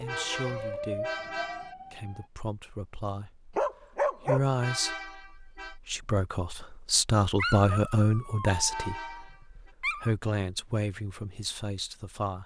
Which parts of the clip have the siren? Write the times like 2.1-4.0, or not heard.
0.0-2.2.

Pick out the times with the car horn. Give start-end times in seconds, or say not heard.
0.1-1.8, 4.6-5.8, 8.7-9.8.